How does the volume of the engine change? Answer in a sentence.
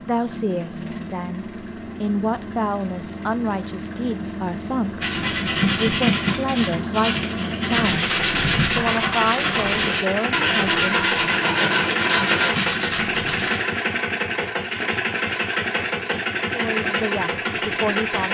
The loudness of the engine goes up.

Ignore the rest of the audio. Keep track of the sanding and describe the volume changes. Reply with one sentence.
The loudness of the sanding stays about the same.